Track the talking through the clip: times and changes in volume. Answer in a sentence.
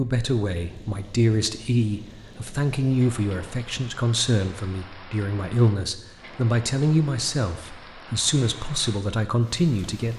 You can hear the talking from 0.0 to 10.1 s, at a steady volume.